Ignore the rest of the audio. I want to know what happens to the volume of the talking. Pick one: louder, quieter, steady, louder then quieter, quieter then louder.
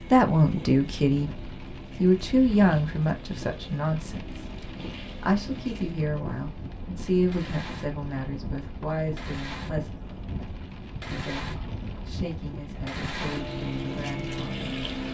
quieter.